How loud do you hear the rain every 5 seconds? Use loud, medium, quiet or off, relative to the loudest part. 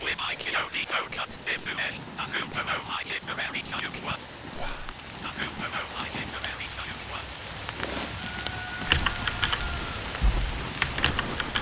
medium, loud, loud.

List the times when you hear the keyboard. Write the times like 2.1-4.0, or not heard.
8.8-11.5.